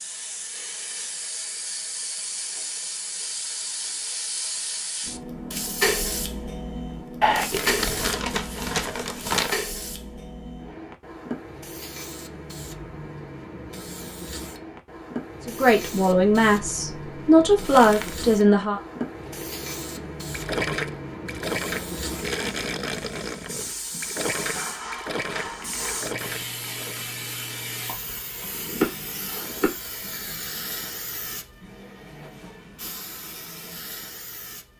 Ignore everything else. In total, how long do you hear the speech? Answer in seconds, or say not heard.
3 s.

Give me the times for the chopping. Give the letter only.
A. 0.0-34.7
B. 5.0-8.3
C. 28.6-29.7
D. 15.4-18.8
C.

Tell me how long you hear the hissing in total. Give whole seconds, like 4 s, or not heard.
35 s.